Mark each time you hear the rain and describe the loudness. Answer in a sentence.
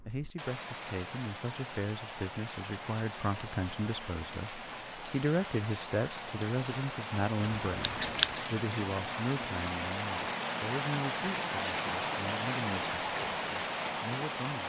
The rain can be heard from 0.0 to 14.6 s, getting louder.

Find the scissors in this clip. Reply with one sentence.
The scissors can be heard from 7.4 to 8.4 s.